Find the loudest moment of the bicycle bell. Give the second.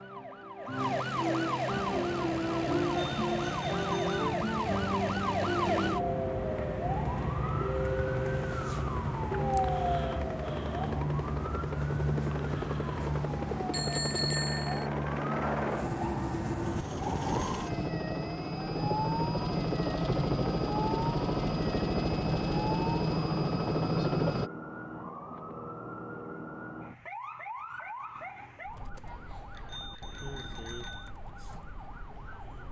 14 s.